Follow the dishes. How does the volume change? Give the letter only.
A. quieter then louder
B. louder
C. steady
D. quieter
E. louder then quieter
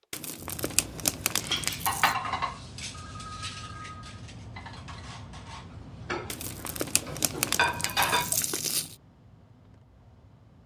A.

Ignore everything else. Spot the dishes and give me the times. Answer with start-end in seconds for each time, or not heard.
1.4-8.3.